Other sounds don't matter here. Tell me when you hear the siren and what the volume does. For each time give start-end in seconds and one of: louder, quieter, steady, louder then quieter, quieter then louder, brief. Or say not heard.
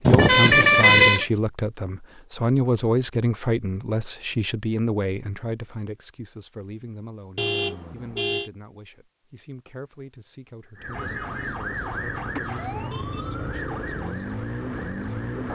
10.8-15.5 steady.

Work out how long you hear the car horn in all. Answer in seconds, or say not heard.
4 s.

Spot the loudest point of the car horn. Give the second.
1 s.